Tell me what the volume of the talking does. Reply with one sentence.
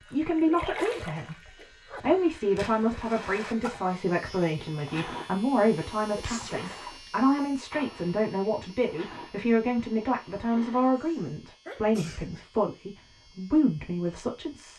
The loudness of the talking stays about the same.